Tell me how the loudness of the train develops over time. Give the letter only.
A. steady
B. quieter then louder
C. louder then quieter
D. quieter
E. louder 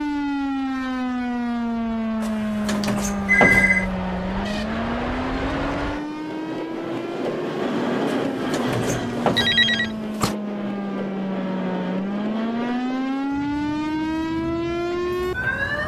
C.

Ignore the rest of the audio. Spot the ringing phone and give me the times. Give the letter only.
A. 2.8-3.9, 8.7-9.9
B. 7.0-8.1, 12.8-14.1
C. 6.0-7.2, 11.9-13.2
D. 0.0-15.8
A.